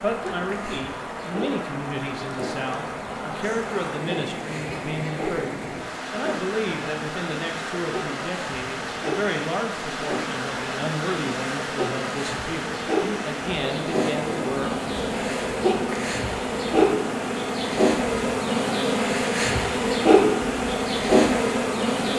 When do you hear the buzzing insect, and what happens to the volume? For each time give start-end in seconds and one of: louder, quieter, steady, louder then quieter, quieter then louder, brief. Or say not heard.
0.0-22.1 louder.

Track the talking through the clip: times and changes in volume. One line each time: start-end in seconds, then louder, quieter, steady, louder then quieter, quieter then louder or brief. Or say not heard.
0.0-14.8 steady.